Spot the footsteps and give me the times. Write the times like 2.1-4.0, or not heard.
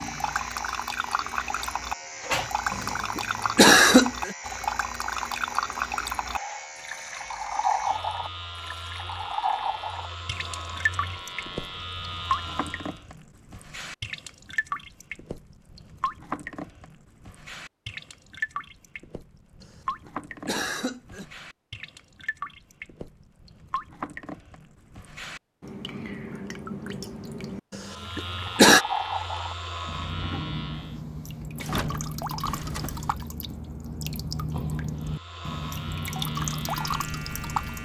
not heard.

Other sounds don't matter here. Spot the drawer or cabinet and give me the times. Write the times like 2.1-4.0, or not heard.
2.2-3.0, 31.6-33.1.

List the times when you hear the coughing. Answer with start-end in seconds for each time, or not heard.
2.7-4.3, 19.6-21.2, 27.7-28.9.